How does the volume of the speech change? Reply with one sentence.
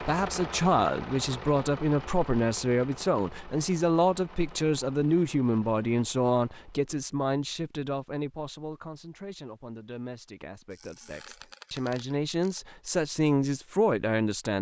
The volume of the speech goes down, then up.